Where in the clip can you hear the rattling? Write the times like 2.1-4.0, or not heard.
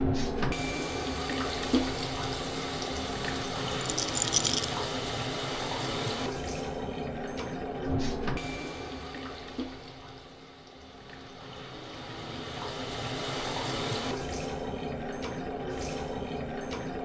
3.8-4.7.